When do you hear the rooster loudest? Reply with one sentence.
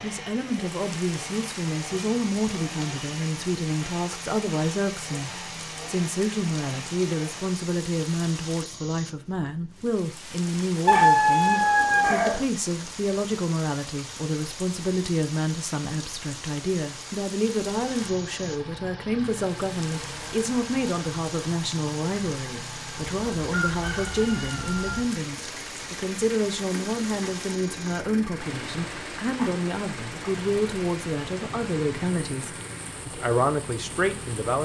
The loudest moment of the rooster is at 11 seconds.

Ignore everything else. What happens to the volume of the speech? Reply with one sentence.
The volume of the speech stays about the same.